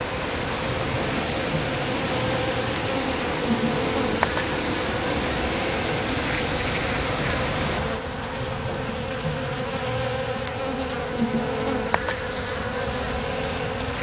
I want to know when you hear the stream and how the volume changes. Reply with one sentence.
The stream can be heard from 0.0 to 7.8 s, at a steady volume.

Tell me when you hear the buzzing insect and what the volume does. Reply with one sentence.
The buzzing insect can be heard from 0.0 to 13.9 s, at a steady volume.